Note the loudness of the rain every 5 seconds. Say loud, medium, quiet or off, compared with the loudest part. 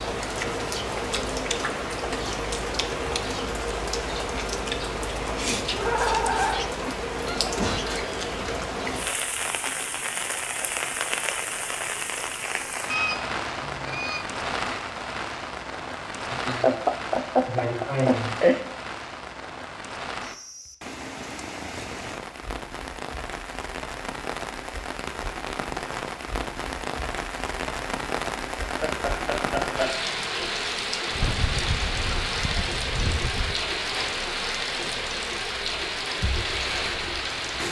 loud, loud, loud, medium, medium, loud, loud, loud.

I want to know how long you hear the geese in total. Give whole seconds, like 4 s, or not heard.
5 s.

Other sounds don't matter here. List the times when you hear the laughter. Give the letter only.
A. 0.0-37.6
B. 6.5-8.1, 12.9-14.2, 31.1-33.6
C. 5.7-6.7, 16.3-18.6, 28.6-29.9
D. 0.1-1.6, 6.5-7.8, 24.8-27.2
C.